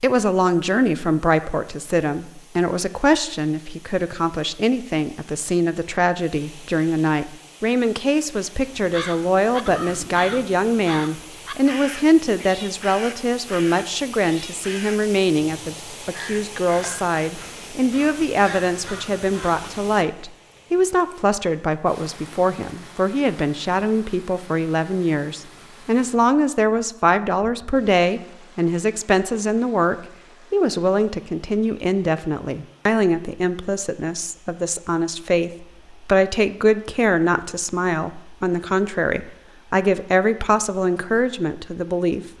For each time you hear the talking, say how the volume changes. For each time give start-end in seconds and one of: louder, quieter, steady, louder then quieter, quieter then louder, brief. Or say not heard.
0.0-42.3 steady.